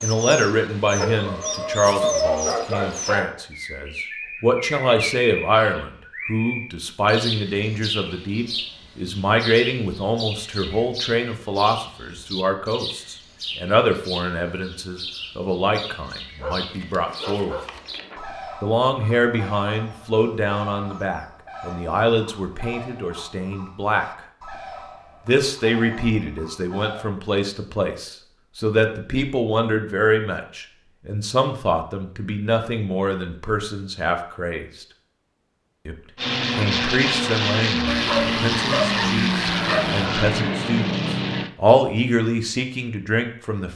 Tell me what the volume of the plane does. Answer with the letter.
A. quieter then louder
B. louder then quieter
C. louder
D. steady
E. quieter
D.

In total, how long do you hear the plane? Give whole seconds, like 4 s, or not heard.
5 s.